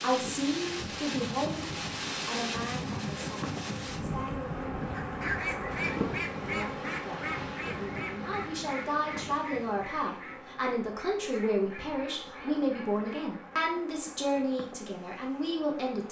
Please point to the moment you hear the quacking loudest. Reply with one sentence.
The loudest moment of the quacking is at 5 seconds.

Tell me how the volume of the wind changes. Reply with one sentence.
The loudness of the wind goes down.